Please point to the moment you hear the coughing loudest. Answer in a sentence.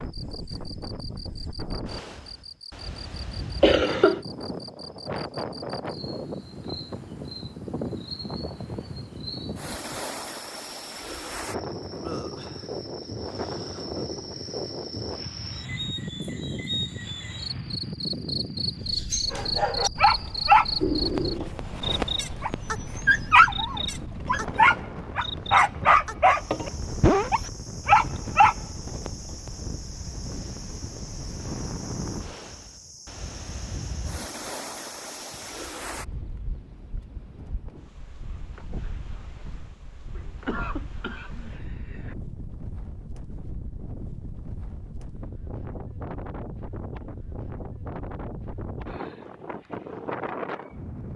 The loudest moment of the coughing is at 4 seconds.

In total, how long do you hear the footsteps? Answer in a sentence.
You can't hear the footsteps here.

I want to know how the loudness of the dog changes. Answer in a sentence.
The loudness of the dog goes down, then up.